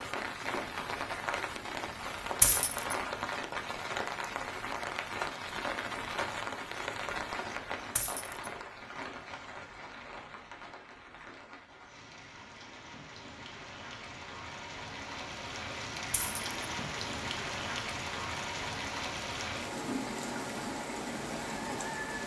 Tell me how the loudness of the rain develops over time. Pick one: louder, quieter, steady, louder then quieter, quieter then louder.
quieter then louder.